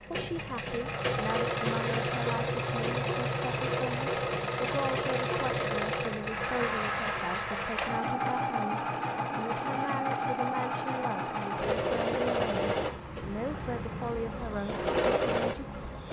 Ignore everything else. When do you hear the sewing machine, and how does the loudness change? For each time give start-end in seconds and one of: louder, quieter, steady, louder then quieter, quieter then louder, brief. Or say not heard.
0.0-16.0 steady.